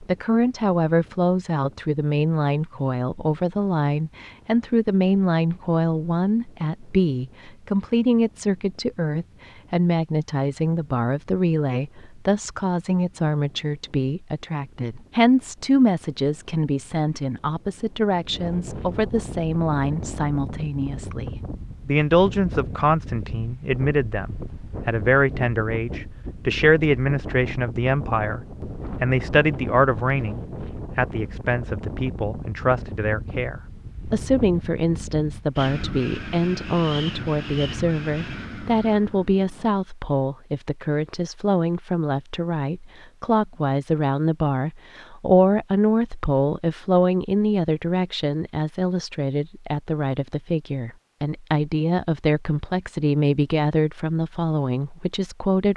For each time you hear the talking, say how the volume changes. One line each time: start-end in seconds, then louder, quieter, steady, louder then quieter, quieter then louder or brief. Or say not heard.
0.0-55.7 steady.